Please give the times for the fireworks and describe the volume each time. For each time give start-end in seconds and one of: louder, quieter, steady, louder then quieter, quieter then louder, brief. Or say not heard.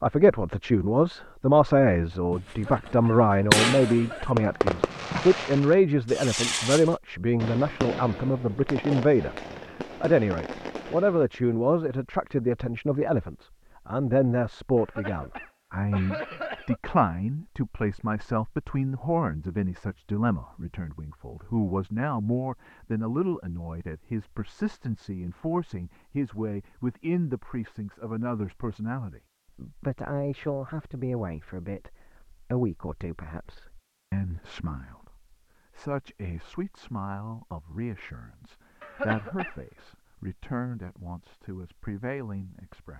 2.3-2.9 brief
3.5-11.2 quieter.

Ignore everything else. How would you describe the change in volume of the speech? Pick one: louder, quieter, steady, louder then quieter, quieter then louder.
quieter.